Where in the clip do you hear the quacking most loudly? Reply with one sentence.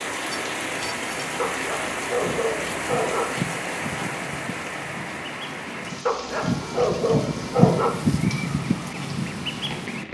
The volume of the quacking peaks at 8 seconds.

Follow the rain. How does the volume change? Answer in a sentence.
The volume of the rain goes down.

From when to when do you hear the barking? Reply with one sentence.
You can hear the barking from 1.4 to 3.4 s and from 6.0 to 8.0 s.